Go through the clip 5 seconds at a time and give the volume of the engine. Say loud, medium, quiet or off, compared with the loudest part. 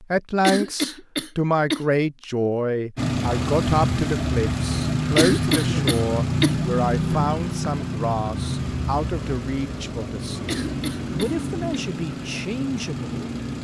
loud, loud, medium.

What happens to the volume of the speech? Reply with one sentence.
The volume of the speech goes down.